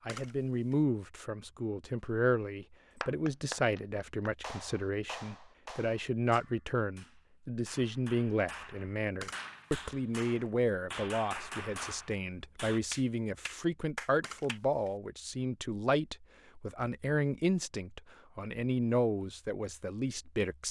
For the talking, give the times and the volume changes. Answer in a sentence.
The talking can be heard from 0.1 to 20.6 s, at a steady volume.